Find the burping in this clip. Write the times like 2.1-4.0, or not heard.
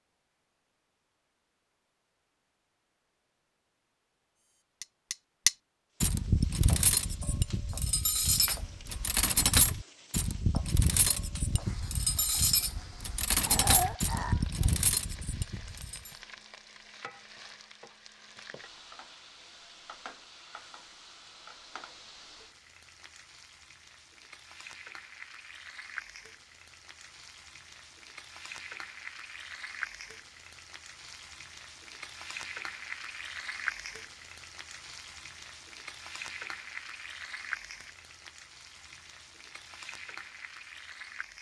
13.4-14.8.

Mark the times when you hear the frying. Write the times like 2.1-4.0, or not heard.
6.0-41.3.